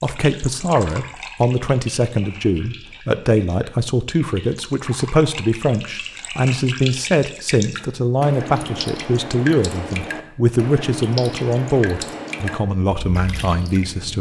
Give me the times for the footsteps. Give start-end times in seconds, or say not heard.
not heard.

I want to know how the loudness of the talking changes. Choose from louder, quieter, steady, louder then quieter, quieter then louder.
steady.